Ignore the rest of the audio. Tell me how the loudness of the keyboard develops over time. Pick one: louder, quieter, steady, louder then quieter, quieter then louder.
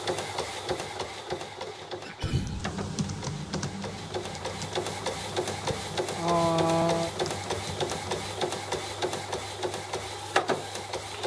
quieter.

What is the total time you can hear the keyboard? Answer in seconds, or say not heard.
6 s.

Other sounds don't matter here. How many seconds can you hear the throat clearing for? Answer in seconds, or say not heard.
2 s.